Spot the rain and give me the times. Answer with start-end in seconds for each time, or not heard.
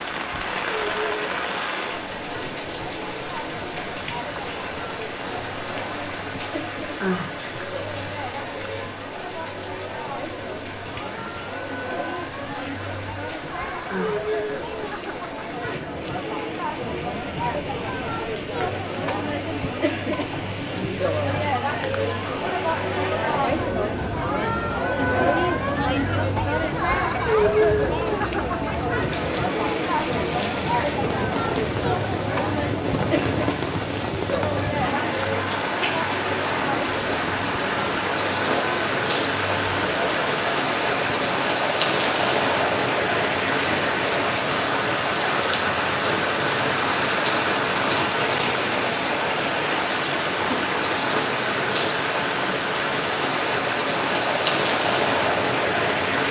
0.0-56.2.